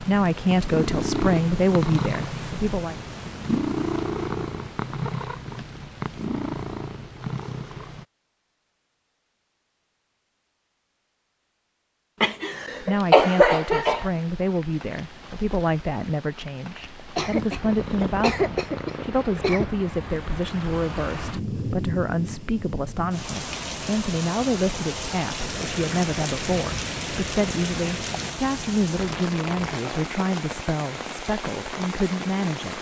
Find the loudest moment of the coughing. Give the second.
13 s.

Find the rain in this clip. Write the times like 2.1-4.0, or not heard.
12.9-32.7.